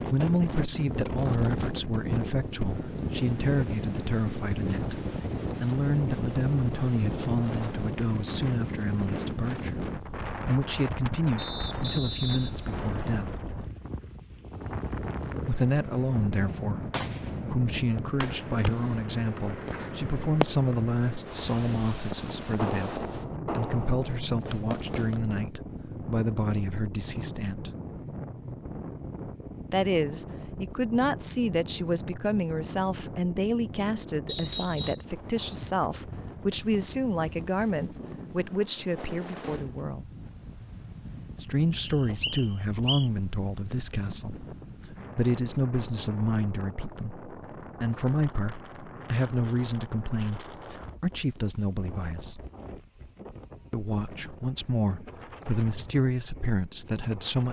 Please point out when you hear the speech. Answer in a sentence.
You can hear the speech from 0.0 to 13.3 s, from 15.4 to 27.7 s, from 29.7 to 40.0 s, from 41.4 to 52.5 s and from 53.7 to 57.4 s.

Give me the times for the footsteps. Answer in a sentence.
The footsteps can't be heard in this clip.